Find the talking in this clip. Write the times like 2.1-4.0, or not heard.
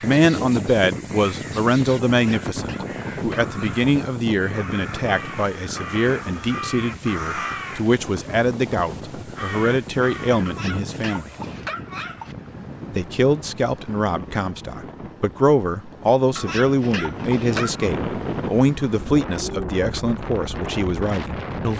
0.0-11.3, 12.9-21.7.